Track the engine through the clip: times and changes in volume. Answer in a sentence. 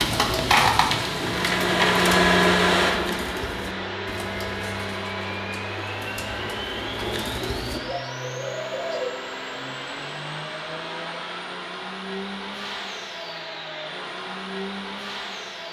You can hear the engine from 0.0 to 15.6 s, getting quieter.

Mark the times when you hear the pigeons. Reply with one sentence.
The pigeons can be heard from 0.0 to 9.2 s.